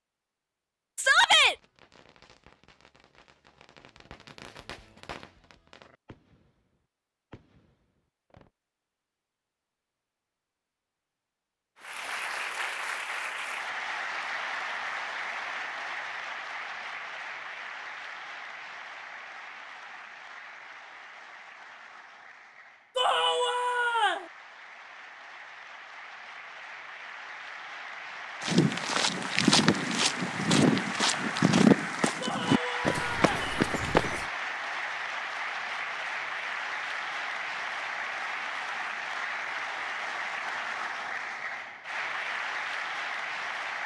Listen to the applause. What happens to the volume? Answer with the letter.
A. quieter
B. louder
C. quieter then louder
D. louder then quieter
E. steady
C.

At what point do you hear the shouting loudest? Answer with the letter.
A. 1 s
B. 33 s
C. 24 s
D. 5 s
A.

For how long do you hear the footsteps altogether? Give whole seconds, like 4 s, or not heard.
6 s.